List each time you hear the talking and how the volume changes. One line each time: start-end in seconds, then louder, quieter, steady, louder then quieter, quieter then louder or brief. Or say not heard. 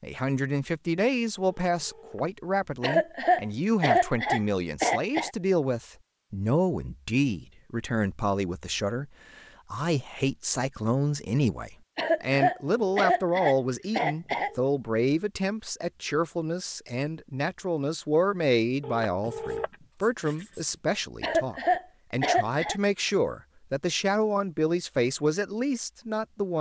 0.0-26.5 steady.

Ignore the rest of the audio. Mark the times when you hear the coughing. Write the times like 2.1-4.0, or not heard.
2.8-5.3, 11.9-14.5, 21.2-22.8.